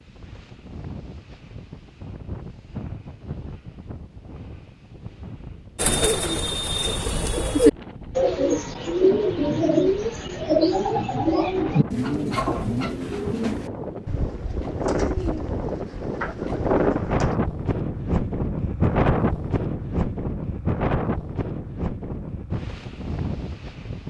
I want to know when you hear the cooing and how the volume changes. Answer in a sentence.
The cooing can be heard from 5.8 to 17.4 s, getting quieter.